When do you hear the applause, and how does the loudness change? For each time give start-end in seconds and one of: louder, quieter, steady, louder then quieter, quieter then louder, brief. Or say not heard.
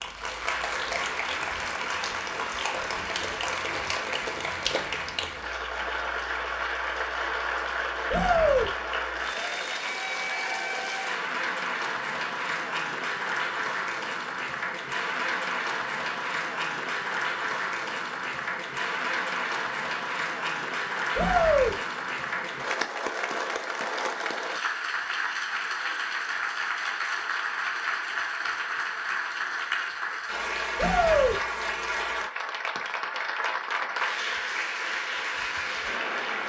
0.0-36.4 steady.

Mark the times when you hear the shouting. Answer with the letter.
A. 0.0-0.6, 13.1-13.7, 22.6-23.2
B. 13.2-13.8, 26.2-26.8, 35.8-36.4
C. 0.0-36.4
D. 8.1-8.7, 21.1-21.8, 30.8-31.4
D.